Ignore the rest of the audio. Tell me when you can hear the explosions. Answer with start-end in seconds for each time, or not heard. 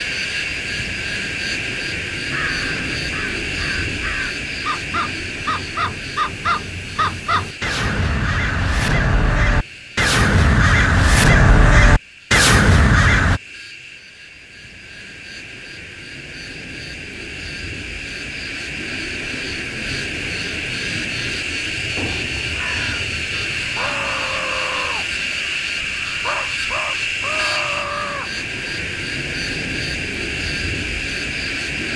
21.9-22.5.